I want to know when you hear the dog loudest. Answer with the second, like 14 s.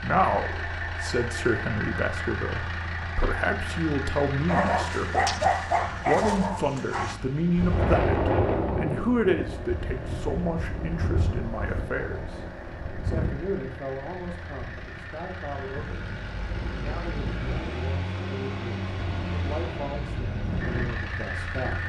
5 s.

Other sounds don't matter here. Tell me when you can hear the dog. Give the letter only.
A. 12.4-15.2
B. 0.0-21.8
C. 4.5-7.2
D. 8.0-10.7
C.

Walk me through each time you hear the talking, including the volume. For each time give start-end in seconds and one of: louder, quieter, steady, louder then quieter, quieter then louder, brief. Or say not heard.
0.0-21.8 quieter.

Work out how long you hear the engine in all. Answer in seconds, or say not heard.
22 s.